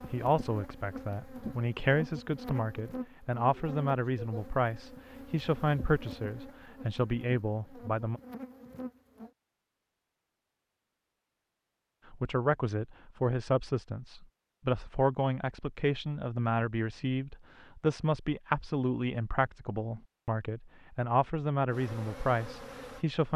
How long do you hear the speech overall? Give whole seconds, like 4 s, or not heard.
19 s.